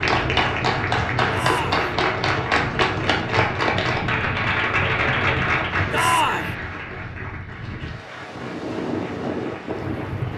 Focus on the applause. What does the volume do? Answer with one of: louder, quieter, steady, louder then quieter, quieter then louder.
quieter.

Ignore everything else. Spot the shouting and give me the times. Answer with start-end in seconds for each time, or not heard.
1.3-1.9, 5.9-6.5.